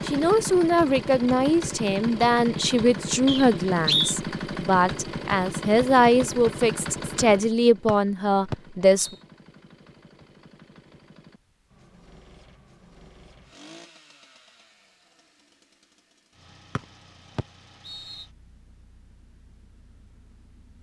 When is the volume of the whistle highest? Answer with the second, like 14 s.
4 s.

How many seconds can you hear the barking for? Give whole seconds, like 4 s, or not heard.
not heard.